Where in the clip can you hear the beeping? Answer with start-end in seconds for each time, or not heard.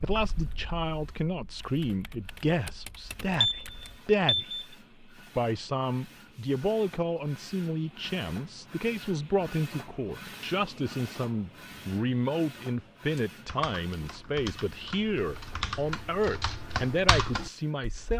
3.4-4.7.